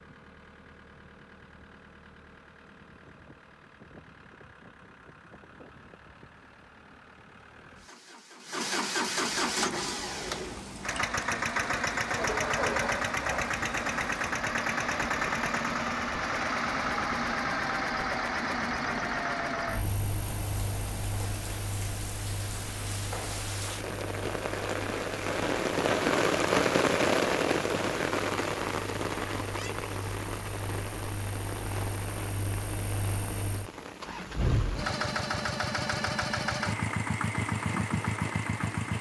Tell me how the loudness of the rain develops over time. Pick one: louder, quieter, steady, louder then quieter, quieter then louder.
louder then quieter.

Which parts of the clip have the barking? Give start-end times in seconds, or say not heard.
12.2-13.7.